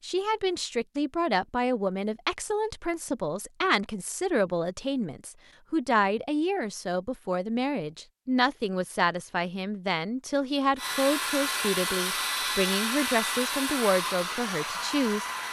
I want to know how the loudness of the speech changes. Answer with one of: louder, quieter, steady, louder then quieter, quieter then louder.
steady.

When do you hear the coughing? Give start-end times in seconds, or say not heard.
not heard.